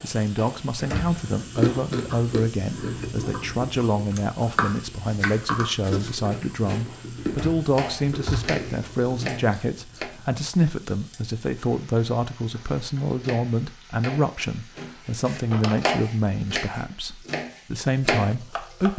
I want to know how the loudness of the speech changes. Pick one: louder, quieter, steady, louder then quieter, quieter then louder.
steady.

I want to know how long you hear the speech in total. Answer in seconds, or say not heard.
19 s.